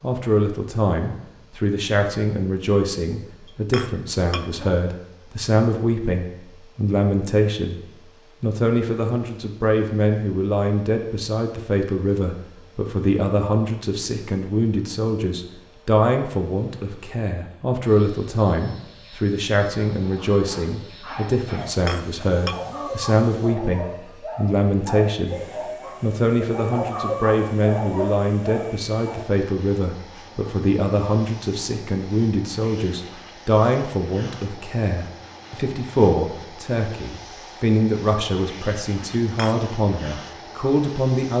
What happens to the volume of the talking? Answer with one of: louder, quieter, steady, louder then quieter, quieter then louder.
steady.